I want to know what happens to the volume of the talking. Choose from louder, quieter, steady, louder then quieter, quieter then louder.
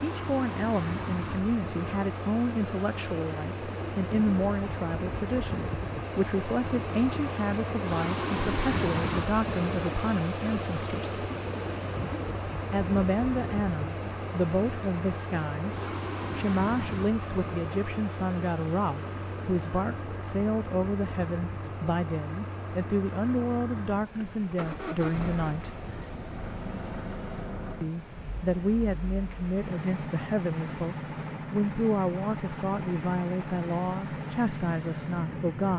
steady.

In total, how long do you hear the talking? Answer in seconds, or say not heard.
32 s.